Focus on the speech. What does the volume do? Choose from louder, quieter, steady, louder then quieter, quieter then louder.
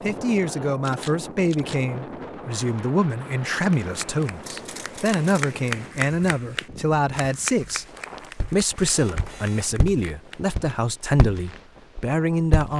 steady.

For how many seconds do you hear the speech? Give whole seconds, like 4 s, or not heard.
12 s.